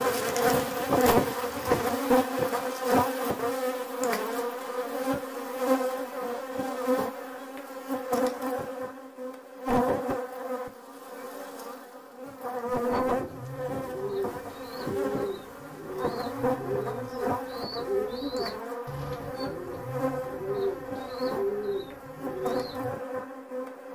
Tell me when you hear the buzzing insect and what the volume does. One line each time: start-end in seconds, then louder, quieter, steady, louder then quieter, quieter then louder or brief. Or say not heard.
0.0-23.9 quieter.